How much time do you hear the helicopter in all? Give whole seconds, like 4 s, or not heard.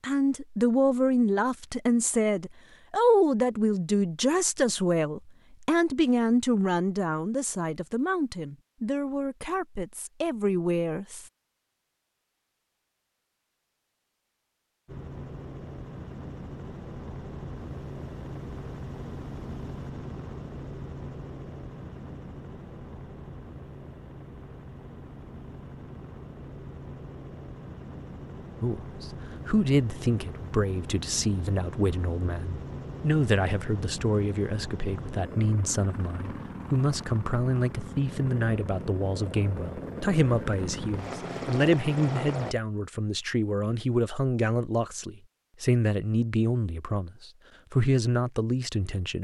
28 s.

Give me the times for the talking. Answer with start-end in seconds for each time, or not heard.
0.0-11.2, 28.6-49.1.